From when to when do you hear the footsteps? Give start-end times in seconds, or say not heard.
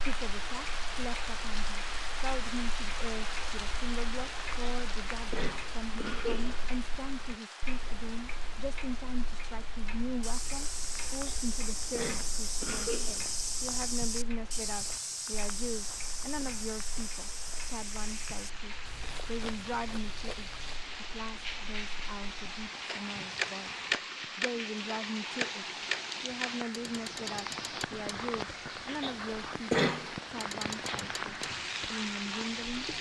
10.2-20.9.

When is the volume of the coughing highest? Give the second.
30 s.